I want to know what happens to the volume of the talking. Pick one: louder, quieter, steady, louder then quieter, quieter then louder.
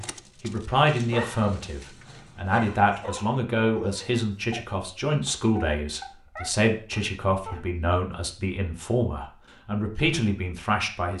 steady.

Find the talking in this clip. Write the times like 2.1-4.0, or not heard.
0.0-11.1.